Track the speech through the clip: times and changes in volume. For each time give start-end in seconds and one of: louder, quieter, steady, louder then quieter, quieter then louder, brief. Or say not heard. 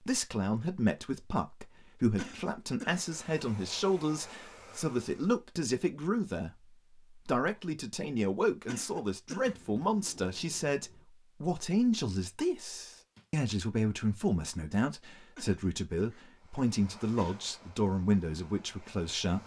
0.0-19.4 steady.